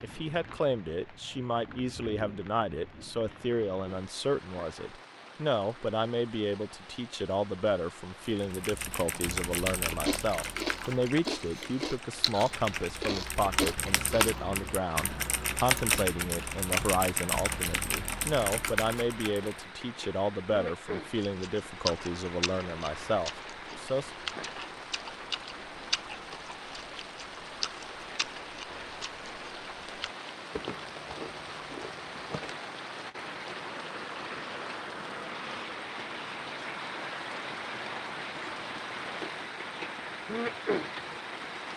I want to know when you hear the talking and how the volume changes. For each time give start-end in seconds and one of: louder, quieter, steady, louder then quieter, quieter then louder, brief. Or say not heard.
0.0-24.1 steady.